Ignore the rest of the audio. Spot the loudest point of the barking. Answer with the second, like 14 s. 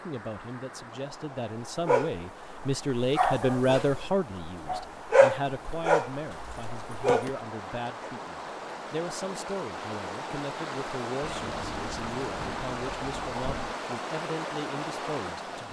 5 s.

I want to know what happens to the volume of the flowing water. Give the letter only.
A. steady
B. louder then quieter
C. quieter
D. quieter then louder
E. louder
E.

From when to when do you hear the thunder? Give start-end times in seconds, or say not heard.
11.2-13.8.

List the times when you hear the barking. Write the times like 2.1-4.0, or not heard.
1.6-7.3.